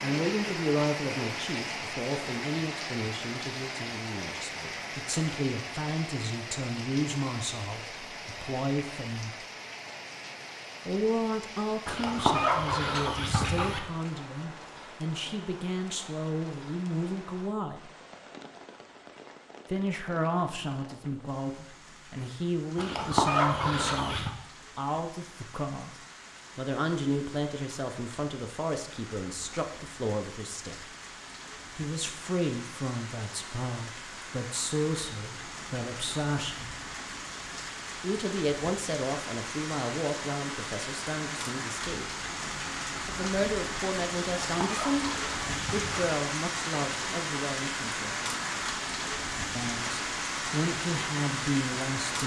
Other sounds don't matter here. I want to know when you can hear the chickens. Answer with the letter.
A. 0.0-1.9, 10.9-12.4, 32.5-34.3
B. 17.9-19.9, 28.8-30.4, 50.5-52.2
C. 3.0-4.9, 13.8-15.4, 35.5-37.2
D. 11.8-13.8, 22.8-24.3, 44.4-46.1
D.